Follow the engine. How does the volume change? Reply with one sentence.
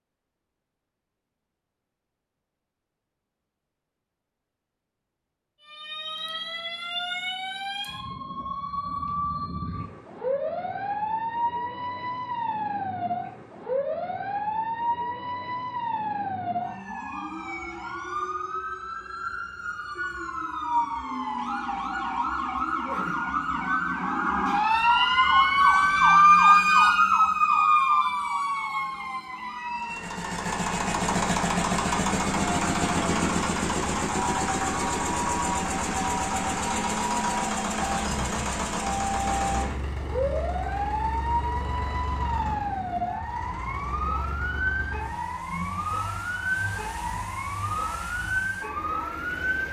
The loudness of the engine goes down.